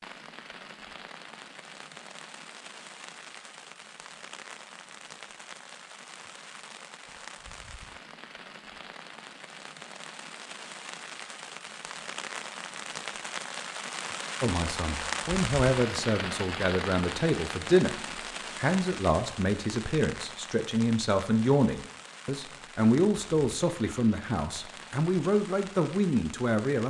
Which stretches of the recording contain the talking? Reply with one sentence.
You can hear the talking from 14.4 to 26.8 s.